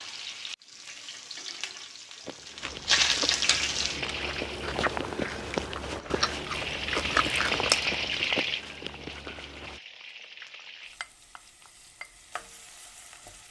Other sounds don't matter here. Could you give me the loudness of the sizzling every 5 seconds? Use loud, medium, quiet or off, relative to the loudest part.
loud, loud, quiet.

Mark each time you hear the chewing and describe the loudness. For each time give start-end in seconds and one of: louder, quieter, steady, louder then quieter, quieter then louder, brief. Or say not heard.
2.6-8.3 louder.